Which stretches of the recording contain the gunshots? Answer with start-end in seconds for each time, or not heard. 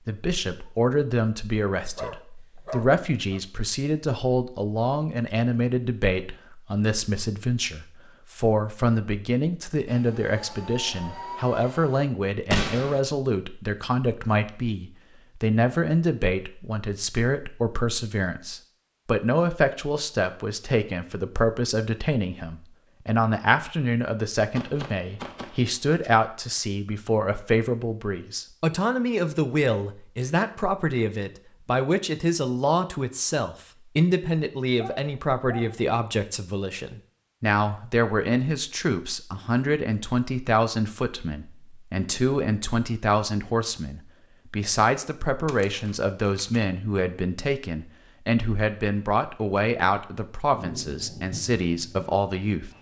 12.5-13.0, 24.6-26.1, 45.2-46.6.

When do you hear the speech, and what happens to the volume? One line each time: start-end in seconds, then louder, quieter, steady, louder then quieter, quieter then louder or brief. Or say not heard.
0.1-52.7 steady.